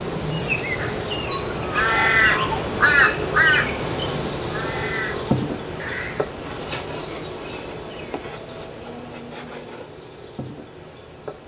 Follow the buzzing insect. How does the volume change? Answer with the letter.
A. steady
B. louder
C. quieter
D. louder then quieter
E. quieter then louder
C.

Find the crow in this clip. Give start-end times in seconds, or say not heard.
0.8-6.2.